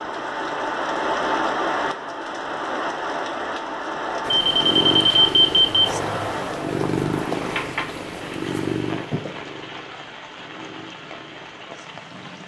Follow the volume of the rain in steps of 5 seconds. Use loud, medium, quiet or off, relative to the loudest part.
loud, medium, quiet.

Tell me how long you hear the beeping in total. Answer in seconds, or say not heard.
2 s.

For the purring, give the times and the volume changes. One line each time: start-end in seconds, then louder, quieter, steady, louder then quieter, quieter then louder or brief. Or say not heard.
4.2-12.4 quieter.